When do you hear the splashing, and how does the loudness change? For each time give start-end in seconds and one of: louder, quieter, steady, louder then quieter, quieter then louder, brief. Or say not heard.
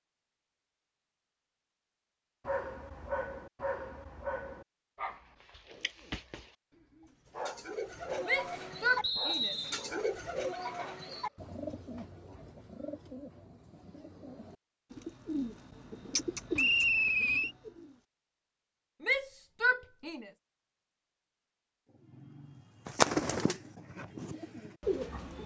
not heard.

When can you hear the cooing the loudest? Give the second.
23 s.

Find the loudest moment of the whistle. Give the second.
17 s.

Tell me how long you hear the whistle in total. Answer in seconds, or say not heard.
2 s.